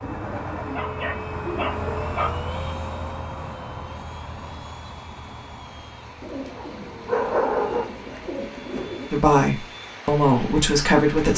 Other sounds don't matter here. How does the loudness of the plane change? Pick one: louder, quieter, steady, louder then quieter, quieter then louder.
quieter.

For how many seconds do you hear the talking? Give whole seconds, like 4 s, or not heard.
2 s.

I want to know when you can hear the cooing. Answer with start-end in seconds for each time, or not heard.
0.0-1.9, 6.2-9.1.